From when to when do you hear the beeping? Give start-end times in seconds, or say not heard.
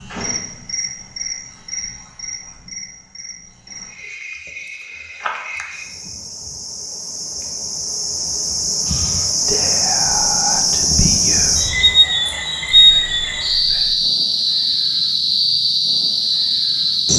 not heard.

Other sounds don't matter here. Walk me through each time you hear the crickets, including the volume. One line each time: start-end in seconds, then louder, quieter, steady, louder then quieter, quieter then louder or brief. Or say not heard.
0.0-17.1 louder.